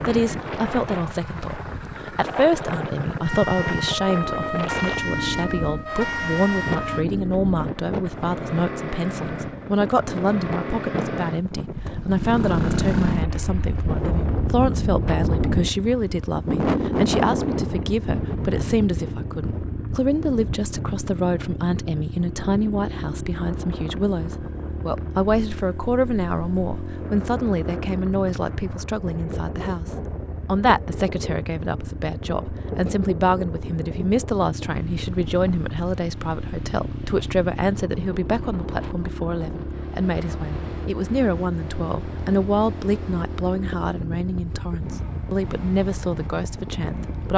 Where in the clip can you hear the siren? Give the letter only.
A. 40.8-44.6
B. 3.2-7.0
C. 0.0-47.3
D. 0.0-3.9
B.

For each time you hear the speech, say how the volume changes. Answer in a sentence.
The speech can be heard from 0.0 to 47.3 s, at a steady volume.